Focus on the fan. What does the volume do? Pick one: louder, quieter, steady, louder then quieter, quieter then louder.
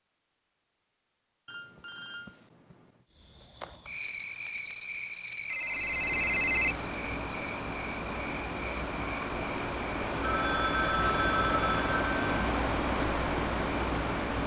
louder.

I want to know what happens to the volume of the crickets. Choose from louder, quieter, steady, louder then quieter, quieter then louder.
quieter.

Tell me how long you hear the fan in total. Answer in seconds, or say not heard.
9 s.